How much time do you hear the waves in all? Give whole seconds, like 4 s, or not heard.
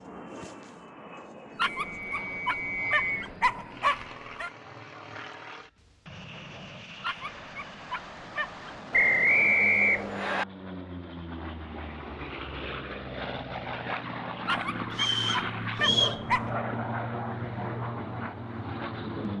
not heard.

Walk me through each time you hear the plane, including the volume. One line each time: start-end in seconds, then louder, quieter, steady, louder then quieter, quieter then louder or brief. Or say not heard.
0.0-19.3 louder.